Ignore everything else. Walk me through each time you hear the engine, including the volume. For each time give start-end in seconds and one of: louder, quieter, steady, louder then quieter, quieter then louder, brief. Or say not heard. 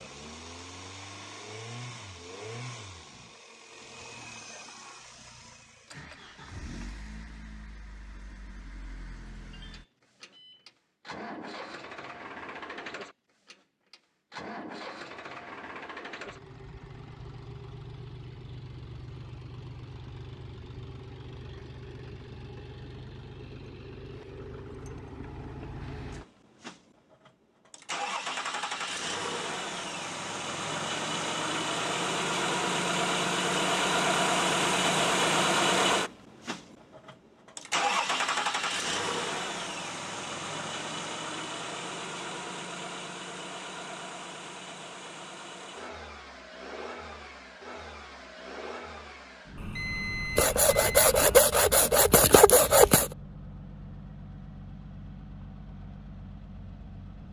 0.0-57.2 louder then quieter.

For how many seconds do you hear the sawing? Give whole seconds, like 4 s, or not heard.
3 s.